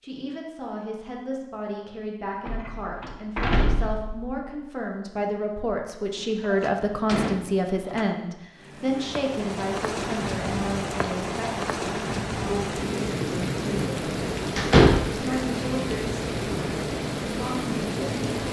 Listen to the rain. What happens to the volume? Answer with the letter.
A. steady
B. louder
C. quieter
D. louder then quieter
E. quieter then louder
A.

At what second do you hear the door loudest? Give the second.
15 s.